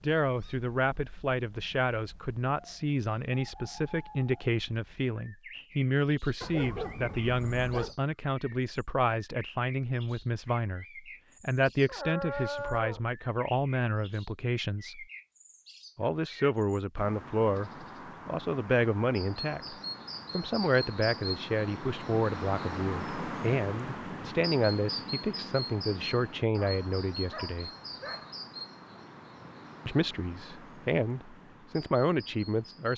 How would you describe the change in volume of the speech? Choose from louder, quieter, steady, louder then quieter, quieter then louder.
steady.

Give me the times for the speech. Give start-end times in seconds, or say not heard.
0.0-15.1, 15.9-27.7, 29.9-32.9.